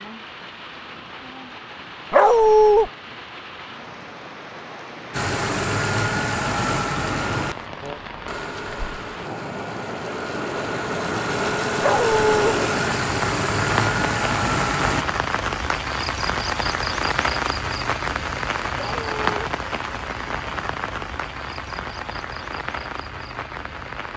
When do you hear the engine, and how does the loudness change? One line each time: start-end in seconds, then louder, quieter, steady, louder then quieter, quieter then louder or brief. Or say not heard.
5.1-15.1 quieter then louder.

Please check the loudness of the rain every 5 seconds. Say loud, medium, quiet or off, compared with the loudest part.
quiet, medium, loud, loud, medium.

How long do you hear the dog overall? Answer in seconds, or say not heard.
2 s.